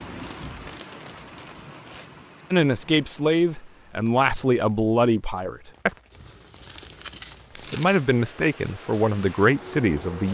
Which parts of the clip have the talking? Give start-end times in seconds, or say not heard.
2.5-6.0, 7.7-10.2.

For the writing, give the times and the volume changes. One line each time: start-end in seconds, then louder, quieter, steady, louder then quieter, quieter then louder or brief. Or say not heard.
not heard.